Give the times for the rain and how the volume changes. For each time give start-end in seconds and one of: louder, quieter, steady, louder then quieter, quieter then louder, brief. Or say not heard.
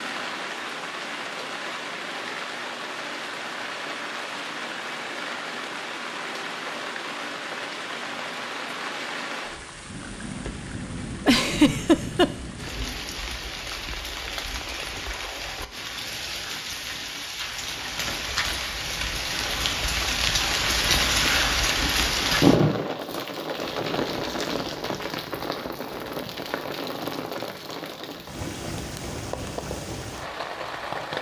0.0-31.1 louder then quieter.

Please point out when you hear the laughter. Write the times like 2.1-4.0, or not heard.
11.2-12.3.